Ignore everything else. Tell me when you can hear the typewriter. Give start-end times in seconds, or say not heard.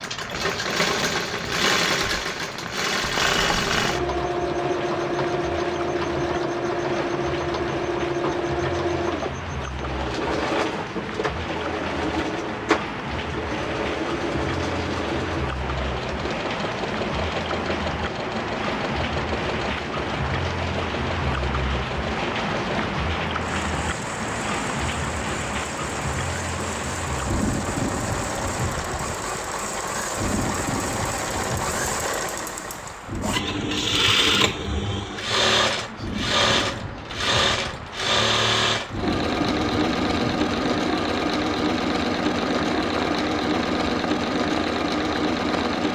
not heard.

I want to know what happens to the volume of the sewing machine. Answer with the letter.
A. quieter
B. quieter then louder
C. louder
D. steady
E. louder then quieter
B.